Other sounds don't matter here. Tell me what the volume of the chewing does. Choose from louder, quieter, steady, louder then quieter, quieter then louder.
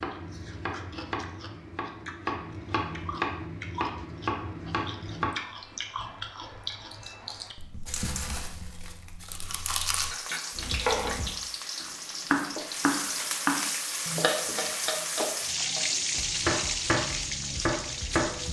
louder.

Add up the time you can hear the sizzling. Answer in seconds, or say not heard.
9 s.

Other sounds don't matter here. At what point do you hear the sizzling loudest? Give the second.
16 s.